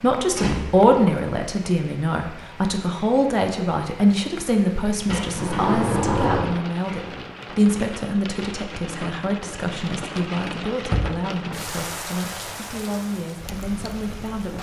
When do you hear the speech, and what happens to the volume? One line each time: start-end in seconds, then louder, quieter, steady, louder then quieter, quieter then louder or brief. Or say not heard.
0.0-14.5 quieter.